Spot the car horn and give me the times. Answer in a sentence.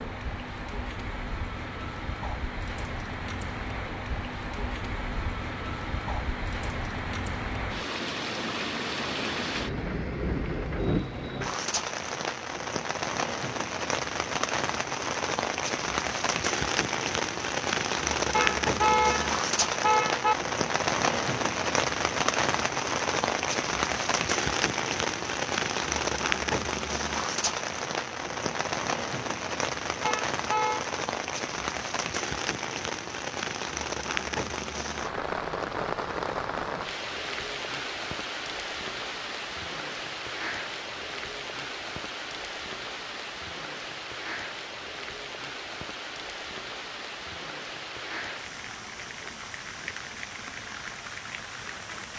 You can hear the car horn from 18.3 to 20.4 s and from 30.0 to 30.9 s.